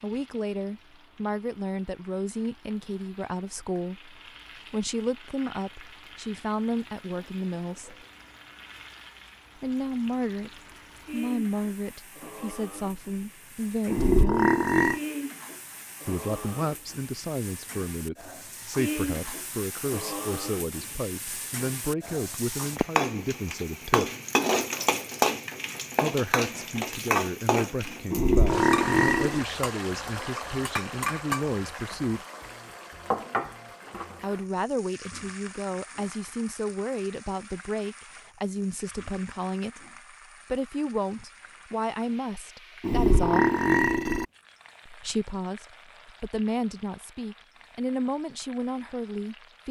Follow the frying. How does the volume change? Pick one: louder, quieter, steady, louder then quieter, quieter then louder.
louder then quieter.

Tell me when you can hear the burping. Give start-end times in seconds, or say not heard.
13.9-15.0, 28.1-29.4, 42.8-44.2.